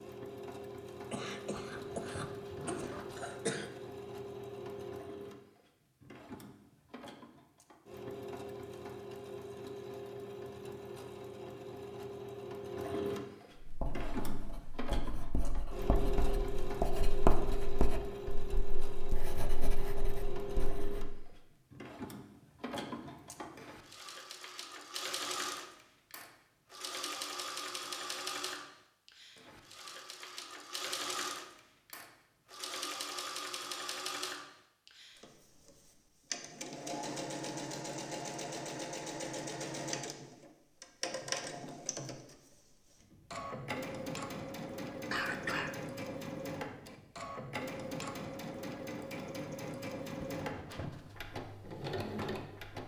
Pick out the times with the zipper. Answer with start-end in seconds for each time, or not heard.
1.6-3.2, 50.1-51.1.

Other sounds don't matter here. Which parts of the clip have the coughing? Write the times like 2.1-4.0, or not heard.
1.1-3.7, 45.1-45.8.